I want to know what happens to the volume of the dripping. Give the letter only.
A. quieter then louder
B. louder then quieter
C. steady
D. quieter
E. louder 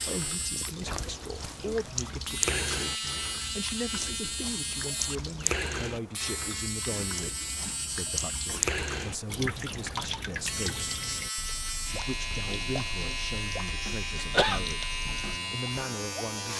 D.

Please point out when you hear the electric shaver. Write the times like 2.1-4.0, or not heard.
0.0-16.5.